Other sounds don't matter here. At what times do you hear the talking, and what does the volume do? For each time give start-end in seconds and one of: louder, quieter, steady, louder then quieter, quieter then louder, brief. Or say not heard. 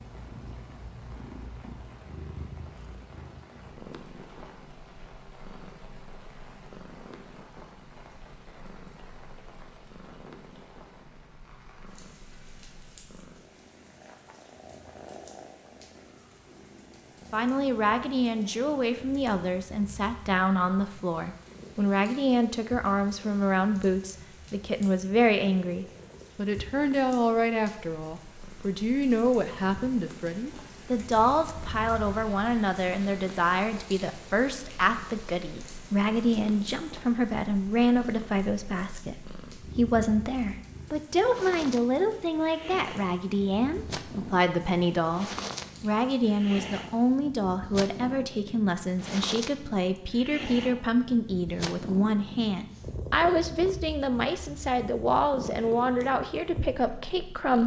17.3-57.6 steady.